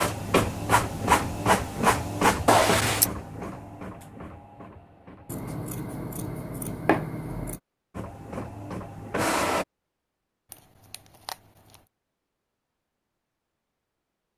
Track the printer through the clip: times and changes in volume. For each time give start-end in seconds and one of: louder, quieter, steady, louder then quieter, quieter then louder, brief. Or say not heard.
0.0-5.5 quieter
8.0-9.7 brief.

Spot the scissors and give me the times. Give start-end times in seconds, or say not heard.
2.5-3.1, 5.2-7.6, 10.5-11.8.